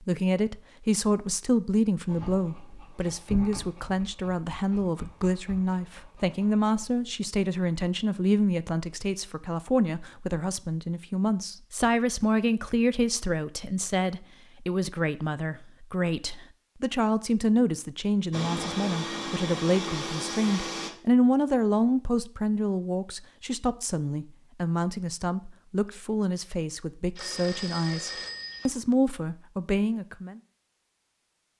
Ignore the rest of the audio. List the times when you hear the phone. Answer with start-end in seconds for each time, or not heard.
27.1-28.7.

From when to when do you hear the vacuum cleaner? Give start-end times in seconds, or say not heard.
18.3-20.9.